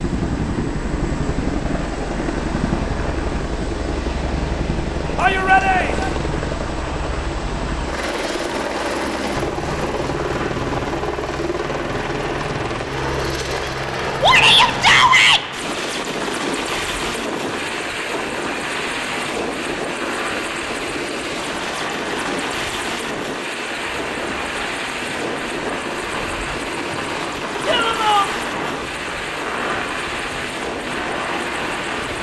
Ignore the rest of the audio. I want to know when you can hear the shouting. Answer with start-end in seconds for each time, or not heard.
5.2-6.2, 14.2-15.4, 27.6-28.3.